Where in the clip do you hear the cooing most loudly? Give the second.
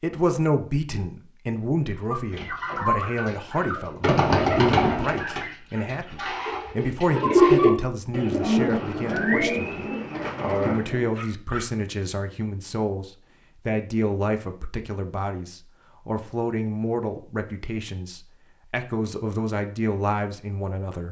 8 s.